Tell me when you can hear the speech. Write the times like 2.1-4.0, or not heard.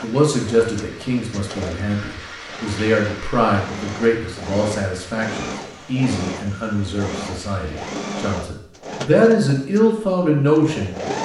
0.0-10.9.